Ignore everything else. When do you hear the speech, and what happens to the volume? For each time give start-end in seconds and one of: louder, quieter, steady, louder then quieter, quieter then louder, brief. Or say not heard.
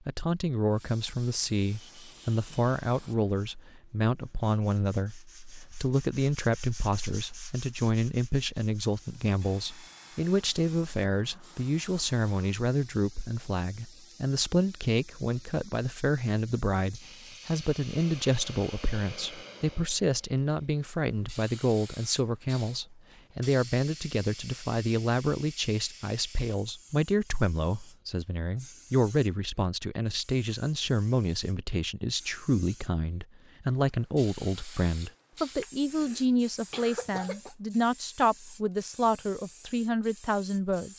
0.1-40.9 steady.